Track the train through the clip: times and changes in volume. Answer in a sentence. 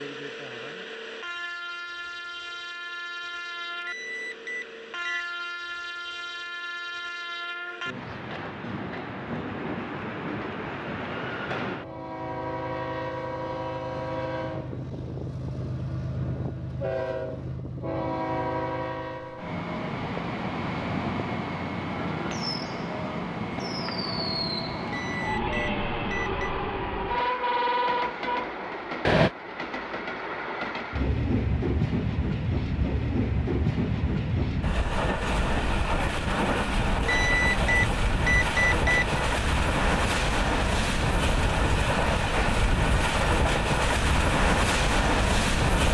You can hear the train from 0.0 to 45.8 s, getting louder.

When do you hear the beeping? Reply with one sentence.
You can hear the beeping from 3.8 to 5.2 s, from 24.9 to 26.5 s and from 37.0 to 39.2 s.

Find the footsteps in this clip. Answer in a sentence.
You can't hear the footsteps here.